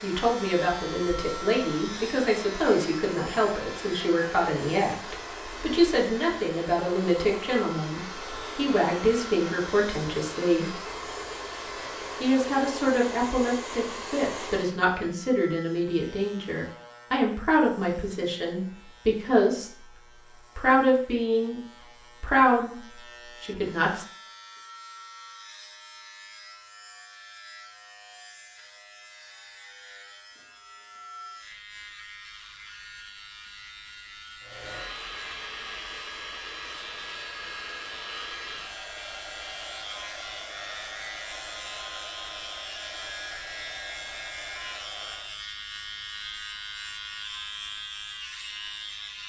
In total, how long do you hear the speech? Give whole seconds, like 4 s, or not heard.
22 s.